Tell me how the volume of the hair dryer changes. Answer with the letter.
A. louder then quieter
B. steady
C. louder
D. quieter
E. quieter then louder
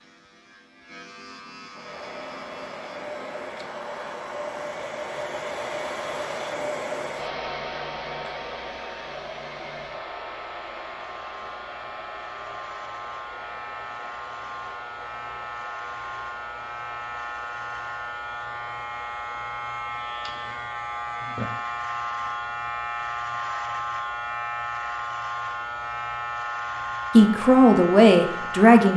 D.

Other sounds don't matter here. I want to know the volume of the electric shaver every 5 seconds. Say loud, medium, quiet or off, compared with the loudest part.
quiet, quiet, medium, loud, loud, loud.